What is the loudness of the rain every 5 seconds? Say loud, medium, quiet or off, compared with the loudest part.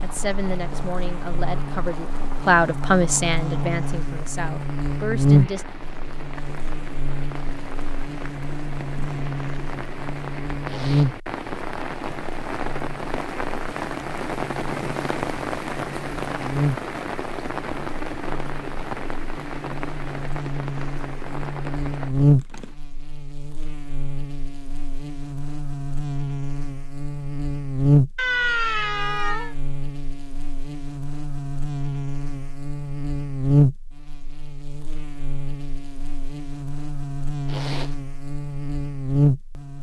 medium, medium, loud, loud, medium, off, off, off.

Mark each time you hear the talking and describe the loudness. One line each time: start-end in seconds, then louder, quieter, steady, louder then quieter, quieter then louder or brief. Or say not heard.
0.0-5.7 louder then quieter.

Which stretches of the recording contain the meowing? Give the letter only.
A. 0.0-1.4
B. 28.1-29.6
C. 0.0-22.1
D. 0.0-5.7
B.